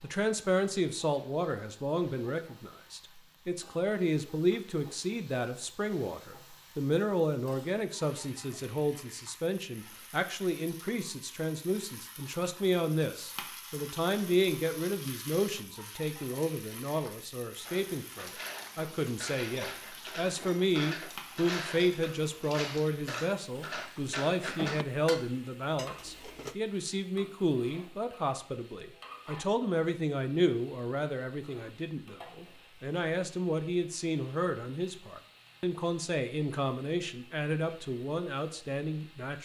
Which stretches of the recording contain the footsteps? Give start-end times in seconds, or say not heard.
not heard.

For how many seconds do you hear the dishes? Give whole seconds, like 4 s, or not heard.
9 s.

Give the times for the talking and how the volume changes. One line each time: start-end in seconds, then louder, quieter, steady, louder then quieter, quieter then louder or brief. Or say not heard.
0.0-39.3 steady.